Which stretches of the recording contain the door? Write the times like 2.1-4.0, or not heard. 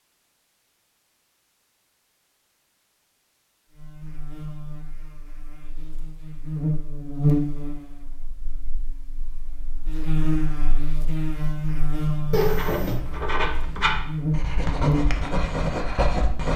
12.3-13.0.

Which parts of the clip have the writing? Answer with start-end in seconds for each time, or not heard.
12.3-16.5.